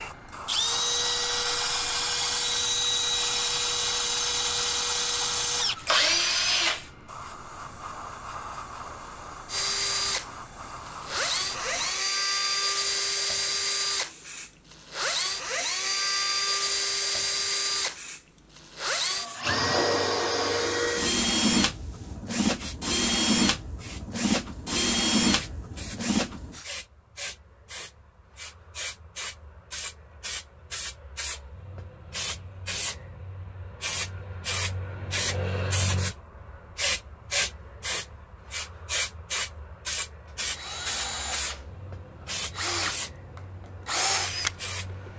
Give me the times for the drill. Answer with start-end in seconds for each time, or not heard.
0.0-6.9, 9.4-26.6, 40.3-45.1.